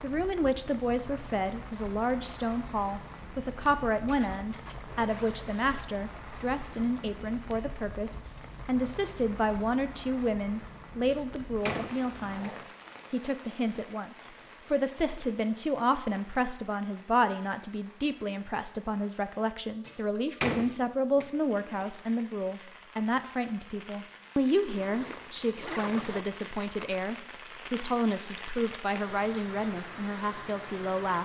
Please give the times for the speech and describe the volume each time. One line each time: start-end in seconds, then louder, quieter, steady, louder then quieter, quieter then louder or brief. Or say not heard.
0.0-31.1 steady.